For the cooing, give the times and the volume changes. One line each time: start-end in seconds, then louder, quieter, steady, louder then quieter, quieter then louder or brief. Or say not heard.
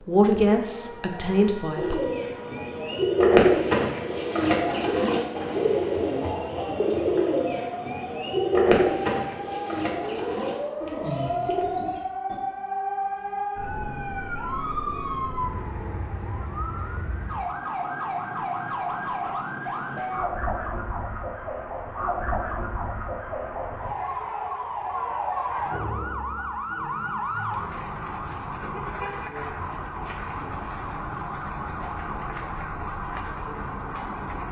1.8-12.4 quieter.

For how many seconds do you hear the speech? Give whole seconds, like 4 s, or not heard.
2 s.